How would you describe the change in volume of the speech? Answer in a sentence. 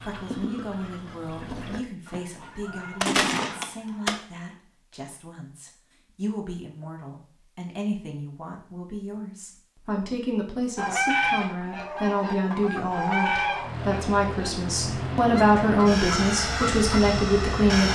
The loudness of the speech goes up.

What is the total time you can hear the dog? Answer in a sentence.
The dog can be heard for 2 seconds in total.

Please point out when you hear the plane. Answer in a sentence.
The plane can be heard from 13.6 to 17.9 s.